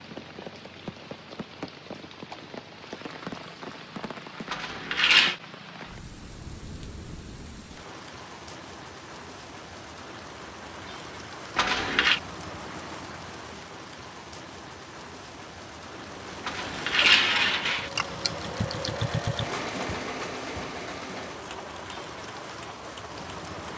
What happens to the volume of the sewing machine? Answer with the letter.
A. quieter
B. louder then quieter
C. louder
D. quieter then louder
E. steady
B.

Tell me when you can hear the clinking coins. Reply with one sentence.
The clinking coins can be heard from 4.5 to 5.3 s, from 11.6 to 12.2 s and from 16.4 to 17.9 s.